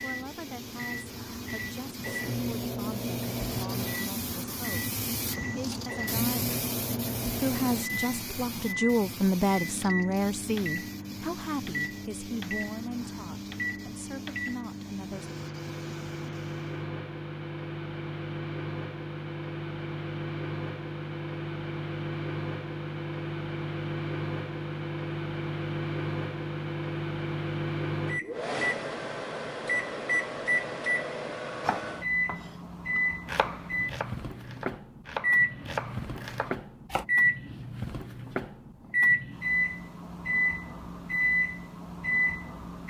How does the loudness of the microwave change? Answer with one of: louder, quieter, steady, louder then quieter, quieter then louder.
louder.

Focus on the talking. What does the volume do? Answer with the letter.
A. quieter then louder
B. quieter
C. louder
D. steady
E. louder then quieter
E.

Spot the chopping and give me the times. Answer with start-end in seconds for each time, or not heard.
31.6-37.0.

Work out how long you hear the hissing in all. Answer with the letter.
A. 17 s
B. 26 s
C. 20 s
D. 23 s
A.